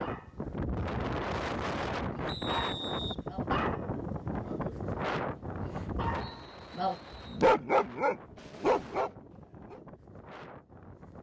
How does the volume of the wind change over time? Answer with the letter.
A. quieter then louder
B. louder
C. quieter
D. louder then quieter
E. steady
C.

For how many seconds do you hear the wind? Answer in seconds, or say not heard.
11 s.